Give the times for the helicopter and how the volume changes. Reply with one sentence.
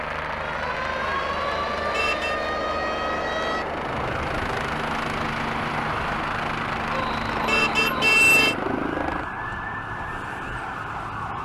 The helicopter can be heard from 0.0 to 9.3 s, at a steady volume.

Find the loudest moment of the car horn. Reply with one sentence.
The loudest moment of the car horn is at 8 seconds.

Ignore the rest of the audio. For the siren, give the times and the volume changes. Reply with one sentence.
The siren can be heard from 0.2 to 11.4 s, at a steady volume.